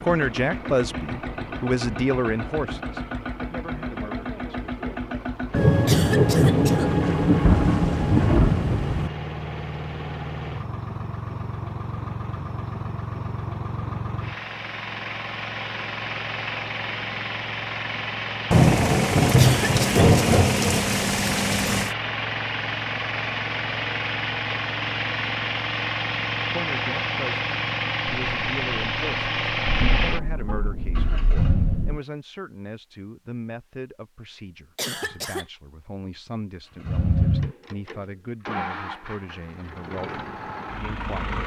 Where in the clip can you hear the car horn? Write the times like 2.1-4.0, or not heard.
not heard.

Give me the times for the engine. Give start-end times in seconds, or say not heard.
0.0-31.9, 36.8-41.4.